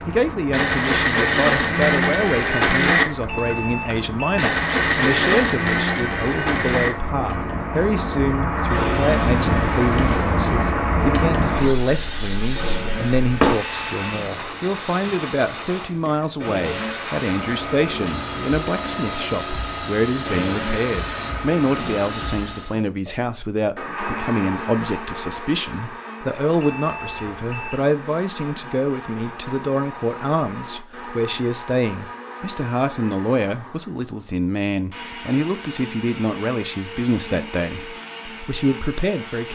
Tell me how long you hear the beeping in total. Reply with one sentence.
The beeping can be heard for 3 seconds in total.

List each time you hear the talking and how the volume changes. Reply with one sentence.
The talking can be heard from 0.1 to 39.5 s, at a steady volume.